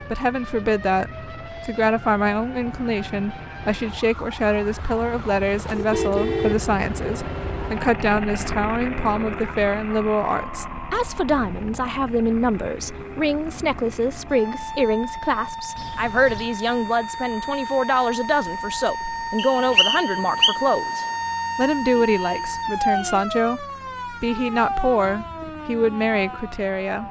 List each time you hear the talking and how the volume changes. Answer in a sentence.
You can hear the talking from 0.0 to 27.0 s, at a steady volume.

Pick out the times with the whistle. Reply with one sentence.
You can hear the whistle from 19.4 to 20.6 s.